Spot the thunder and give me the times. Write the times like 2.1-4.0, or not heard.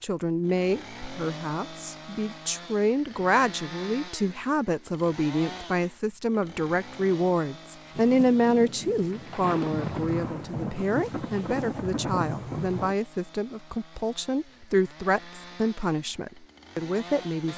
8.0-12.9.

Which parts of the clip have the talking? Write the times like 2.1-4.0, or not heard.
0.0-17.5.